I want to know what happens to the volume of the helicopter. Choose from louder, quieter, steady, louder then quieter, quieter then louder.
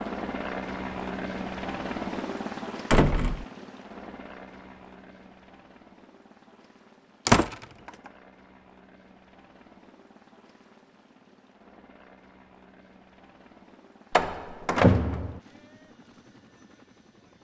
quieter.